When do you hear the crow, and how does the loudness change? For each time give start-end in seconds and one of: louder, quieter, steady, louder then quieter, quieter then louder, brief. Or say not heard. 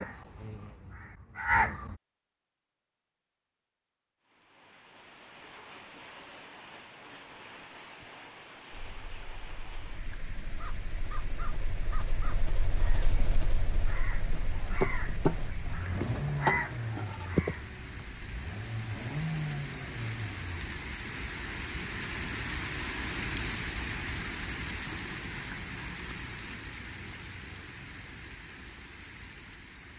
0.0-1.9 brief
10.5-18.1 louder.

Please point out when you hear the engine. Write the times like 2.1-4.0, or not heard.
8.7-20.6.